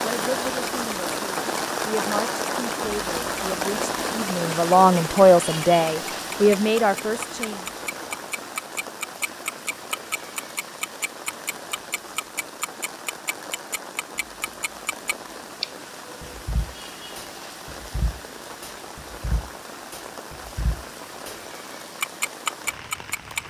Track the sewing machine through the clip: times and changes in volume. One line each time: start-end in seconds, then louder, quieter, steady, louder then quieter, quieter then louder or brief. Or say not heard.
not heard.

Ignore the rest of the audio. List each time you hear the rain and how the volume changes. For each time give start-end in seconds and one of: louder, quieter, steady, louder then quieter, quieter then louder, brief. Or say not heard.
0.0-23.4 quieter.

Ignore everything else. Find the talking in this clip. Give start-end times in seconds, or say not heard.
0.0-7.7.